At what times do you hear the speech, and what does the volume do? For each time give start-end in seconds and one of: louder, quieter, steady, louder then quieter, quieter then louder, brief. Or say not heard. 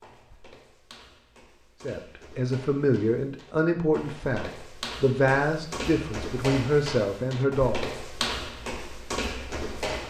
1.8-7.8 steady.